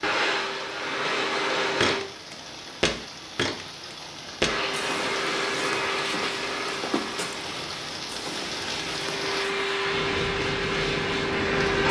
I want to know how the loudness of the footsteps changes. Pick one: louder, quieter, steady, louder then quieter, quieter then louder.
quieter.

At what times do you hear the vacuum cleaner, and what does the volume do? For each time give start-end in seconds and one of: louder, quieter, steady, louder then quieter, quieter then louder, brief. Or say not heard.
0.0-2.0 brief
4.4-11.8 quieter then louder.